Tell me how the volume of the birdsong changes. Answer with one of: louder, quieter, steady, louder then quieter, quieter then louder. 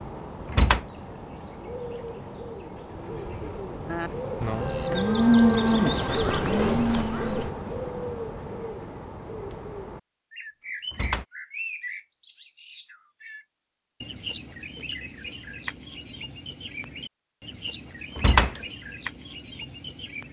louder then quieter.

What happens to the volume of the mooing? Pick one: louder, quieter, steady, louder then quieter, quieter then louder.
louder then quieter.